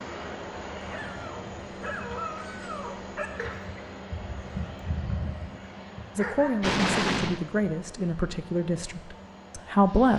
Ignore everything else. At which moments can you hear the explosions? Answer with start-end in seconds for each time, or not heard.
6.6-7.4.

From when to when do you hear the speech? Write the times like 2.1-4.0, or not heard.
6.2-10.1.